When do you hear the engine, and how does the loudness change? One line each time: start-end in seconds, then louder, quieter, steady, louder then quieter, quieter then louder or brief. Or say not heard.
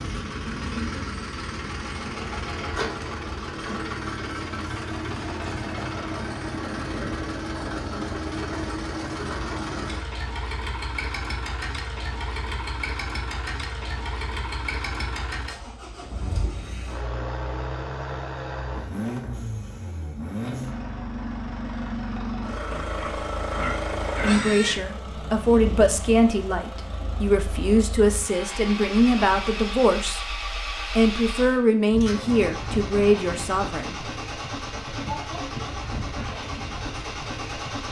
0.0-37.8 steady.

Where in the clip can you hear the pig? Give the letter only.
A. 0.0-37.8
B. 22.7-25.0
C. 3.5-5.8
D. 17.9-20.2
B.